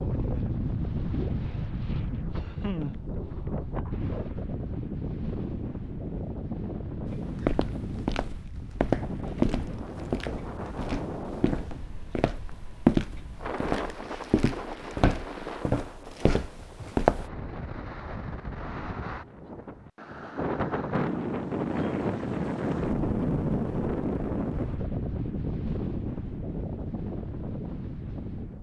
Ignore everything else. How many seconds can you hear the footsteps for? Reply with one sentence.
The footsteps can be heard for 10 seconds in total.